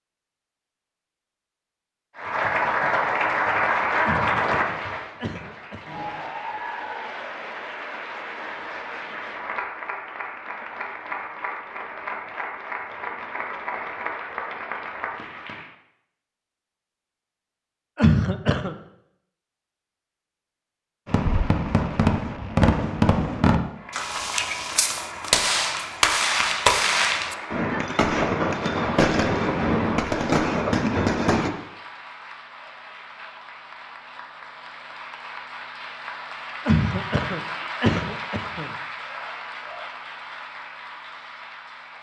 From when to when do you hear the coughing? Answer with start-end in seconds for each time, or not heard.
4.0-6.1, 17.9-18.8, 36.6-38.7.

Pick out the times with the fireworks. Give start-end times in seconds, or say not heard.
21.1-31.5.